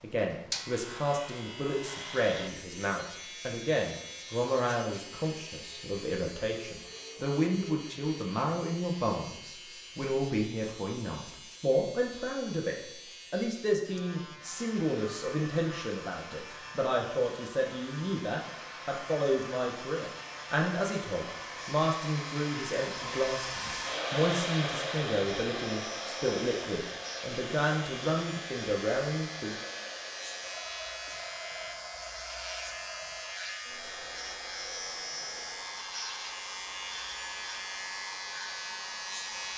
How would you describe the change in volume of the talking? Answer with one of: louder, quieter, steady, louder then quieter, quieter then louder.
steady.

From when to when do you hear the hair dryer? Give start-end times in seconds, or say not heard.
14.4-39.5.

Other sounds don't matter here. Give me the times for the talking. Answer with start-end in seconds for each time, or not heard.
0.0-29.6.